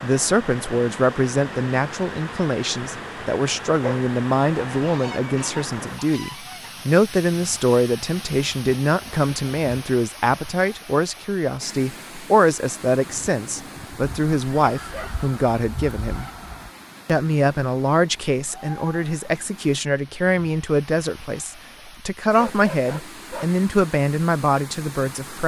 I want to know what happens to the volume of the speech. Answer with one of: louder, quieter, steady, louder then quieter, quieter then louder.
steady.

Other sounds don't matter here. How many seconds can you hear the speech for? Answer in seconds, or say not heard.
25 s.